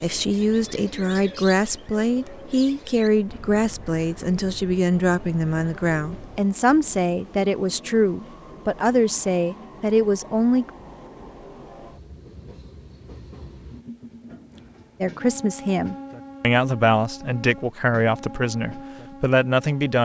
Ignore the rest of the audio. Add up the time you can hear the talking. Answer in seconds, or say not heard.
16 s.